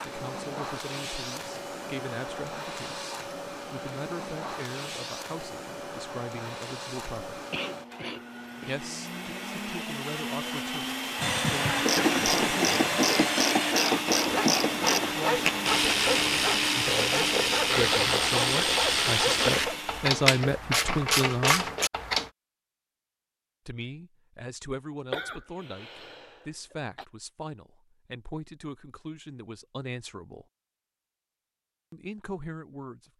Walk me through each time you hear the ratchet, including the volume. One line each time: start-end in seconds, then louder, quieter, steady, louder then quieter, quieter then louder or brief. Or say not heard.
11.8-22.3 steady.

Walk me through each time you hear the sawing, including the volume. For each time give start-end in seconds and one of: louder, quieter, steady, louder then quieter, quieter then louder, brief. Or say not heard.
11.2-19.8 steady.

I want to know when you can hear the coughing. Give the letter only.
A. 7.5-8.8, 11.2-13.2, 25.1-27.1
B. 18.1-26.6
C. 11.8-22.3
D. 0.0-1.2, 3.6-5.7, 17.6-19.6
A.